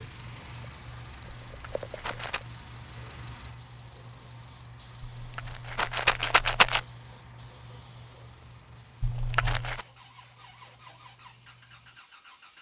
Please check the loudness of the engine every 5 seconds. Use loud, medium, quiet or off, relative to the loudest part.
loud, medium, medium.